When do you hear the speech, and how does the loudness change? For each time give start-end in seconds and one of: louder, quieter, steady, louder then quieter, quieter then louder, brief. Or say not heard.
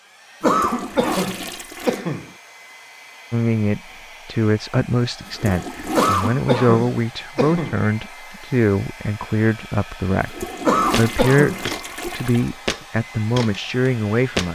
3.3-14.5 steady.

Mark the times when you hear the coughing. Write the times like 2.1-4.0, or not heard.
0.4-2.3, 6.0-7.8, 10.7-11.7.